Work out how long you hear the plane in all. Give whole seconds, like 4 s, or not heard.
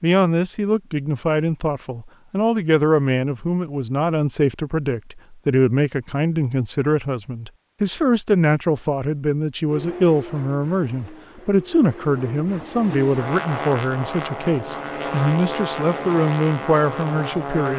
8 s.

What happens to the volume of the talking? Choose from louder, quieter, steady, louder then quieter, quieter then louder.
steady.